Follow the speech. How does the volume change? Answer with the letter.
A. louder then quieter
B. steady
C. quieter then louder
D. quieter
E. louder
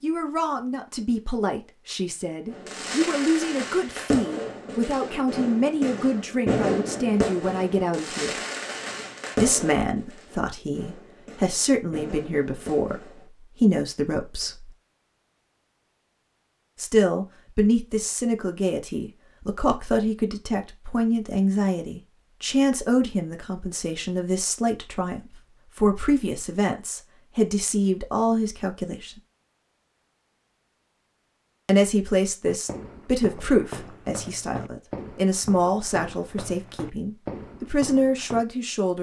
B.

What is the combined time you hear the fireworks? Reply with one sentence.
The fireworks can be heard for 11 seconds in total.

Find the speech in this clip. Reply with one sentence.
You can hear the speech from 0.0 to 8.3 s, from 9.3 to 14.7 s, from 16.8 to 29.2 s and from 31.6 to 38.9 s.